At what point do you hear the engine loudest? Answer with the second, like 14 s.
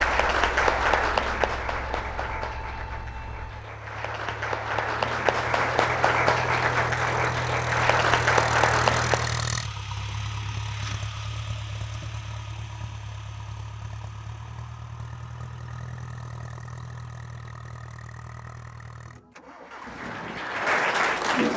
9 s.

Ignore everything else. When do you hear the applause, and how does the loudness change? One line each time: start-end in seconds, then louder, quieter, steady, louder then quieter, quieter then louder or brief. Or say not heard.
0.0-9.4 quieter then louder
19.6-21.5 brief.